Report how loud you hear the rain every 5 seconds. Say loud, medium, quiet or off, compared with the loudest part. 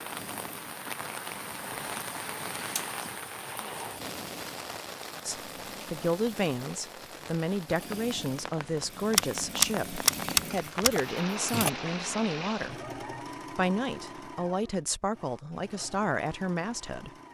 loud, medium, loud, off.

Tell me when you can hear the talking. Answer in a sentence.
The talking can be heard from 5.2 to 12.8 s and from 13.6 to 17.1 s.